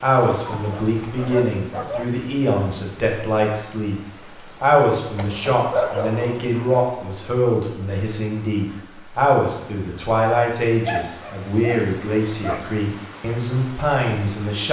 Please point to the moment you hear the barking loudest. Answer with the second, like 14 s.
6 s.